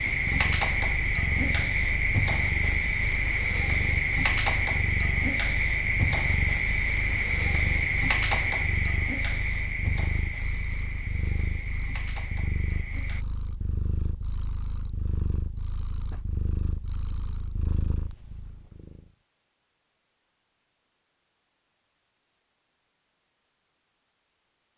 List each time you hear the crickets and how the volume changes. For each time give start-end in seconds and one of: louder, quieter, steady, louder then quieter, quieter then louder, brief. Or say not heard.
0.0-13.2 quieter.